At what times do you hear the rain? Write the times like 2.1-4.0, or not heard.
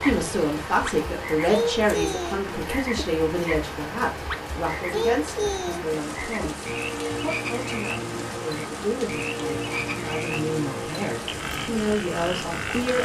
0.0-13.0.